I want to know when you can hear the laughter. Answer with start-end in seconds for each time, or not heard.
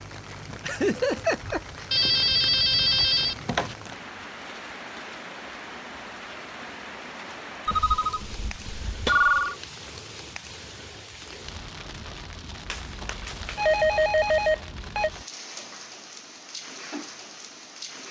0.6-1.9.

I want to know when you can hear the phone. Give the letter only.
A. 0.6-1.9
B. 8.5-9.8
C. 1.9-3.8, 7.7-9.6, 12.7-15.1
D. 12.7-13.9
C.